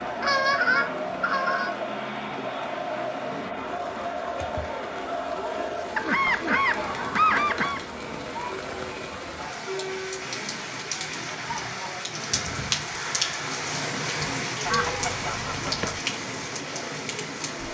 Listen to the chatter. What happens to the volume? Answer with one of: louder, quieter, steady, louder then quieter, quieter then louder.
quieter.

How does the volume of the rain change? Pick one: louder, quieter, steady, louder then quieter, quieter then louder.
louder.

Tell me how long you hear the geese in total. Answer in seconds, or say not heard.
5 s.